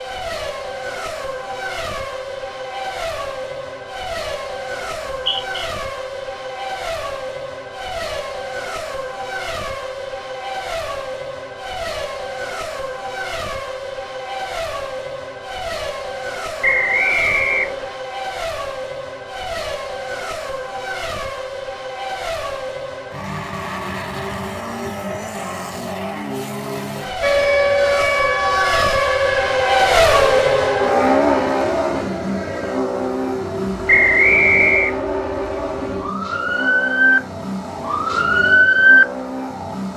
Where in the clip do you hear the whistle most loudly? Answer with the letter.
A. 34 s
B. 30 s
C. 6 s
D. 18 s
A.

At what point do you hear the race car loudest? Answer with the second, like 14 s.
30 s.